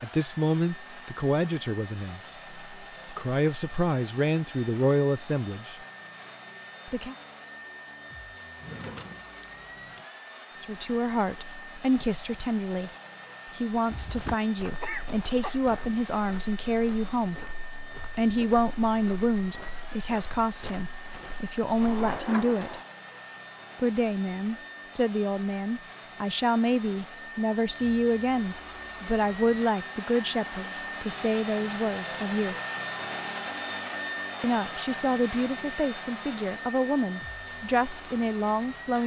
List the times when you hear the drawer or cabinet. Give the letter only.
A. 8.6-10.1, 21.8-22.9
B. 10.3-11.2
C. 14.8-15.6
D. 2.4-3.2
A.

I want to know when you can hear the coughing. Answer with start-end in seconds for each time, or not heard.
14.8-15.6.